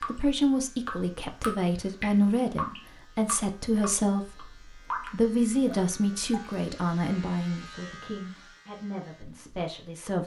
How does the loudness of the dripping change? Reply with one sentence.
The volume of the dripping goes down.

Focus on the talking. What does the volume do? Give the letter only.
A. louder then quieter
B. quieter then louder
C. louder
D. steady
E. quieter
E.